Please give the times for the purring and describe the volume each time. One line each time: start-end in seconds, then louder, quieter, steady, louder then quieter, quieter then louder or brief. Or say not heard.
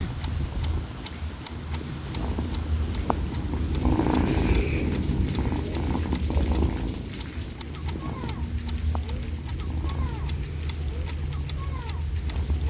0.0-12.6 louder then quieter.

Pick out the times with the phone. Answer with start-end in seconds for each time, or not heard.
not heard.